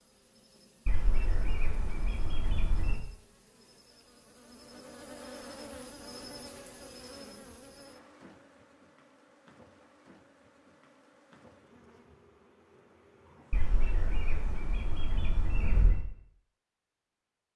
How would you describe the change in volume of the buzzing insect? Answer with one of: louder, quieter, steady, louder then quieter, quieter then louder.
louder then quieter.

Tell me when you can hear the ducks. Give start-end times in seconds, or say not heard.
0.8-3.0, 13.5-16.0.